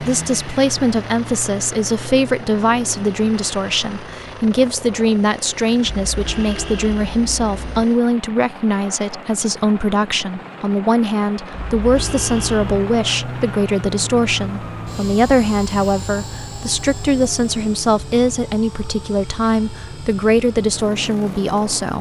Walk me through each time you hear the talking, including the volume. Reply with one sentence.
You can hear the talking from 0.0 to 21.9 s, at a steady volume.